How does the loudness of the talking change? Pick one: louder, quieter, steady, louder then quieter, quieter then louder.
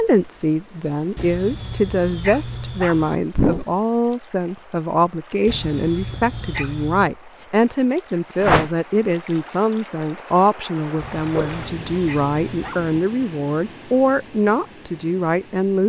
steady.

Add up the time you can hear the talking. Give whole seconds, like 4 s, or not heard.
16 s.